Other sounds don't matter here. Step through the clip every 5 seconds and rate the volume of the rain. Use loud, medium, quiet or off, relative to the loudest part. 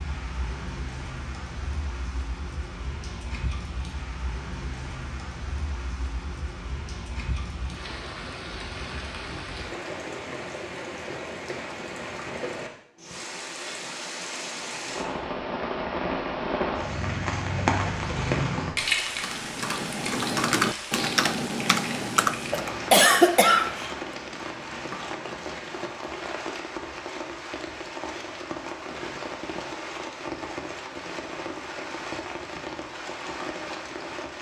medium, medium, medium, loud, medium, medium, medium.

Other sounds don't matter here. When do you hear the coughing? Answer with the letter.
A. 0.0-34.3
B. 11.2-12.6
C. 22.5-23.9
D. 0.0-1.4
C.